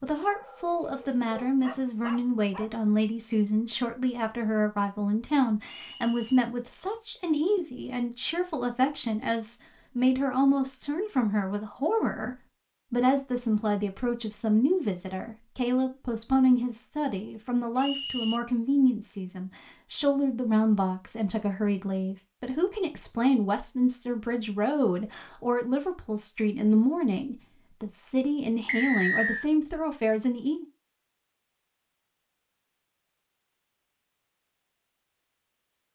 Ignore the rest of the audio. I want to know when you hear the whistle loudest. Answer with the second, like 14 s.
29 s.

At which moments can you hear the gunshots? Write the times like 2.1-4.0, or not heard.
not heard.